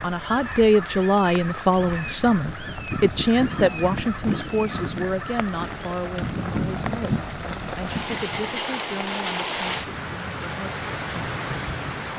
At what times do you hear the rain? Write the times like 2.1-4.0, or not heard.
0.0-12.1.